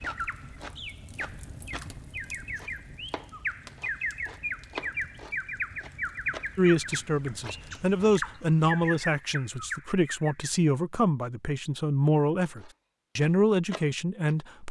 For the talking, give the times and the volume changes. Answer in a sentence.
The talking can be heard from 6.5 to 14.6 s, at a steady volume.